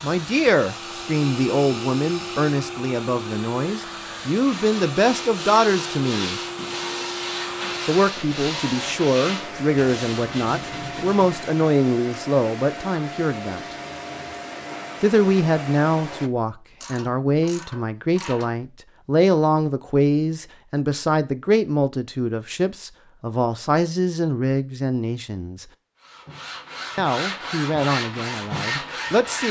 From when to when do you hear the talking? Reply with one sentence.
The talking can be heard from 0.0 to 6.4 s, from 7.8 to 13.7 s, from 15.0 to 25.6 s and from 26.9 to 29.4 s.